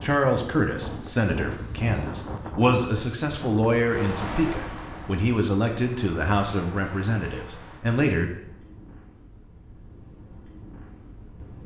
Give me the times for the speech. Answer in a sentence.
You can hear the speech from 0.0 to 8.3 s.